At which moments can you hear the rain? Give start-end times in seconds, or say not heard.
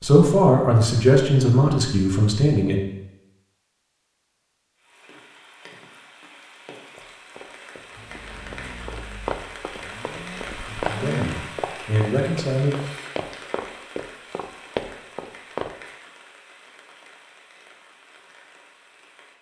4.8-19.3.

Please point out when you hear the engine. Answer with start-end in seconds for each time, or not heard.
8.0-11.4.